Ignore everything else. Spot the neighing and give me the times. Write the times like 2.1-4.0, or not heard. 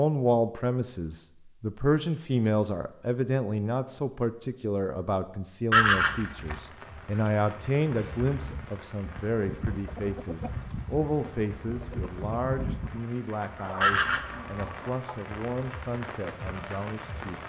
5.7-6.6, 13.8-14.7.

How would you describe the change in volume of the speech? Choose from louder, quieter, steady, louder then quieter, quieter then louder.
quieter.